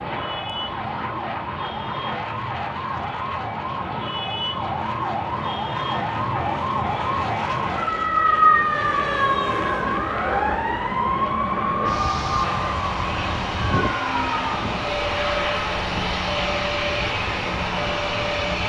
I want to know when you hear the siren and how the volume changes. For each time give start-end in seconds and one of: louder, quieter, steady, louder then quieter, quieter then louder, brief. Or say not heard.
0.0-18.6 louder then quieter.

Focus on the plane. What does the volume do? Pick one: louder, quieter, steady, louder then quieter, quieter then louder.
louder.